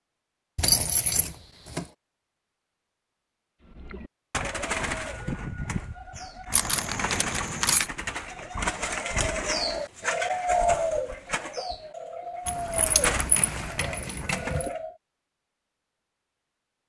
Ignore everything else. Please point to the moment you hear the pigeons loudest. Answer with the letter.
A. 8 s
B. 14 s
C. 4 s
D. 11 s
D.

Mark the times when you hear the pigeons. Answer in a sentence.
The pigeons can be heard from 3.7 to 14.9 s.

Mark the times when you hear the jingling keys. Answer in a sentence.
The jingling keys can be heard from 0.6 to 1.9 s, from 6.5 to 7.9 s and from 12.4 to 14.7 s.